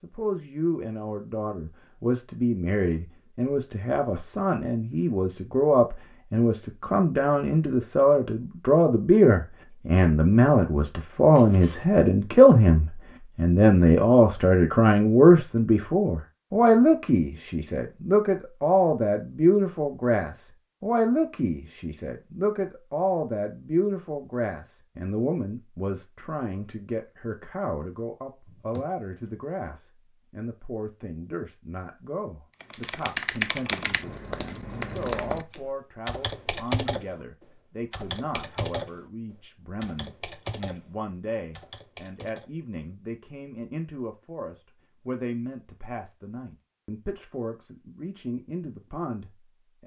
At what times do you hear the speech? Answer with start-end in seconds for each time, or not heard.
0.0-49.8.